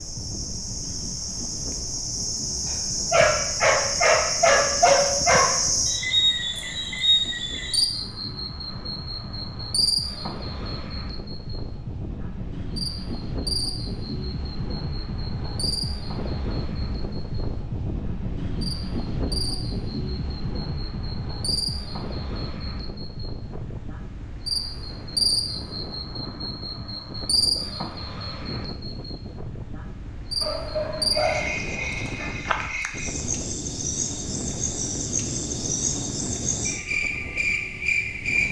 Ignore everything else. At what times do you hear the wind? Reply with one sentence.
The wind can be heard from 0.0 to 38.4 s.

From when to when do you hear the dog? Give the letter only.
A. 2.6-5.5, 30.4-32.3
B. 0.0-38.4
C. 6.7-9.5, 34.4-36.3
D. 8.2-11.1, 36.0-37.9
A.